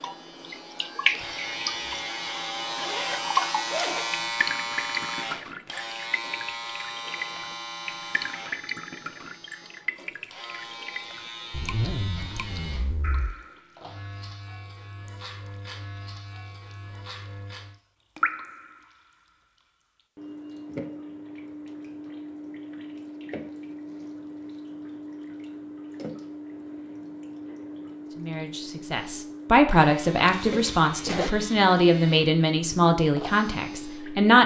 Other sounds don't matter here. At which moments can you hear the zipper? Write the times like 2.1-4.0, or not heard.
2.6-4.2, 11.5-13.3, 30.2-31.3.